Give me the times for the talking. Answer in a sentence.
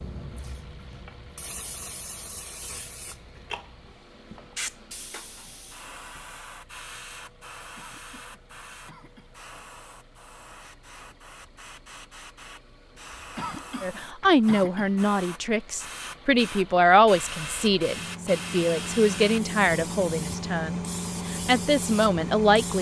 You can hear the talking from 13.8 to 22.7 s.